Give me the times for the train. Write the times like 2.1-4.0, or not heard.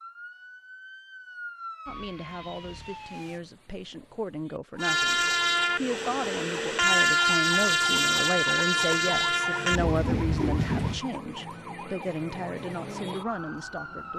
4.8-11.0.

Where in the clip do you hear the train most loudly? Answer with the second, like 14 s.
7 s.